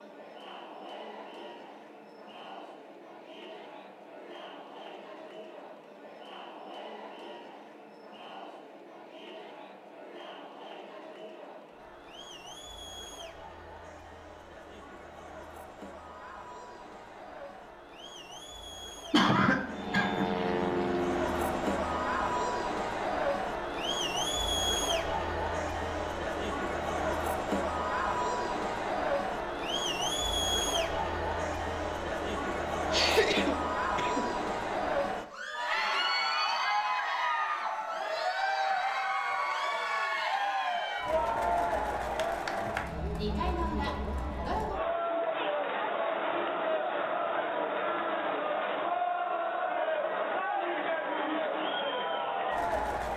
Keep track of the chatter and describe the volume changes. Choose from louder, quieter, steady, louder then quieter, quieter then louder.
louder.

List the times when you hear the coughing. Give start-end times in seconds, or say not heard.
19.1-20.4, 32.9-34.4.